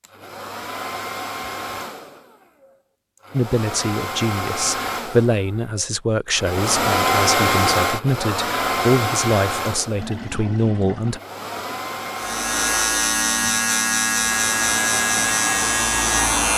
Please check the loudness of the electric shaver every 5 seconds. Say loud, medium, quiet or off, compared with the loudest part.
off, off, loud, loud.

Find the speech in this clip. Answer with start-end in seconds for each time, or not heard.
3.3-11.2.